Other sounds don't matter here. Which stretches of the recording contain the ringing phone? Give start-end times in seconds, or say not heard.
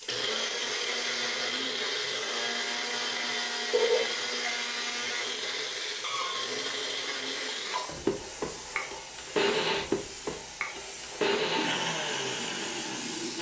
3.7-4.6.